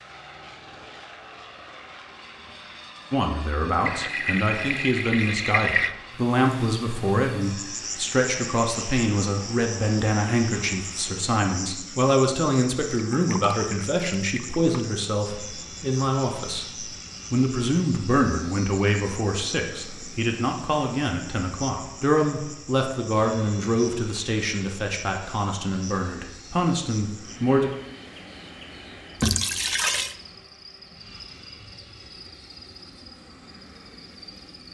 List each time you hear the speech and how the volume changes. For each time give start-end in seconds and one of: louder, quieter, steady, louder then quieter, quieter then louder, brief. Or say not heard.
3.1-27.7 steady.